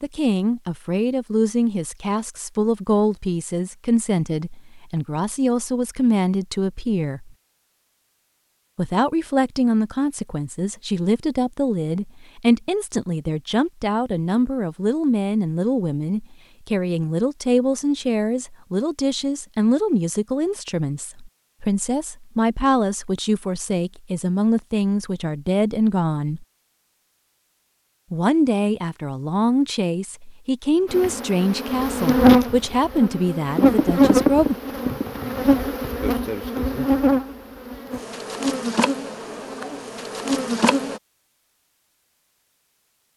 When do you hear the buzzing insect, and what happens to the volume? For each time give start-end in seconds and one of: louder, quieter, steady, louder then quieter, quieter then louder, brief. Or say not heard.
30.9-41.0 quieter.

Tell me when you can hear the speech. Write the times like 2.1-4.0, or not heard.
0.0-7.3, 8.8-26.4, 28.1-34.5.